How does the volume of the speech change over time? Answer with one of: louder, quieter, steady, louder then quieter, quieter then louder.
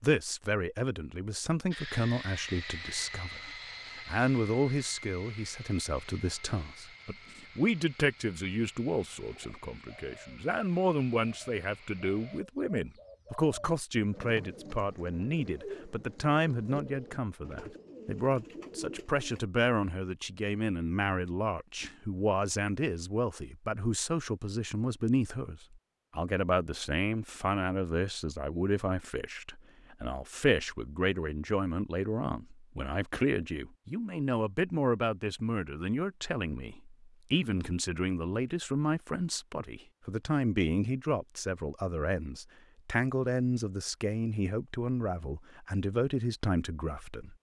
steady.